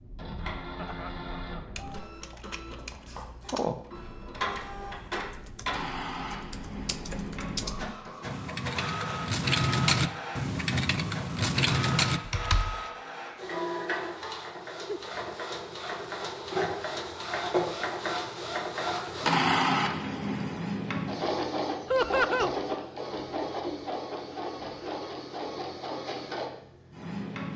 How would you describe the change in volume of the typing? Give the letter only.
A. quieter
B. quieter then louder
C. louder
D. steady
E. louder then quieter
B.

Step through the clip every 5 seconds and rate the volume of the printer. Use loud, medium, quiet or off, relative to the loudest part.
medium, medium, medium, loud, loud, medium.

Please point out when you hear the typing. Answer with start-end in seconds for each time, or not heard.
1.8-12.8.